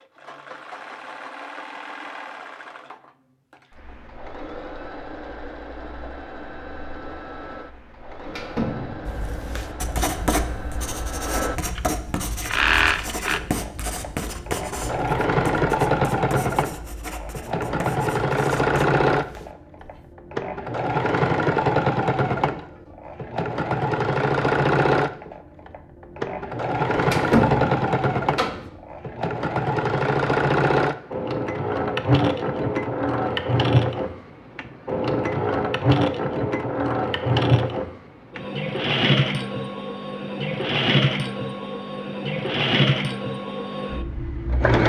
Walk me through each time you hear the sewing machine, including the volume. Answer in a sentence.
The sewing machine can be heard from 0.0 to 44.8 s, getting louder.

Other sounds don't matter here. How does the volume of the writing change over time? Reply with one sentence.
The volume of the writing goes down.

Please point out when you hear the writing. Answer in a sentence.
You can hear the writing from 9.1 to 20.1 s.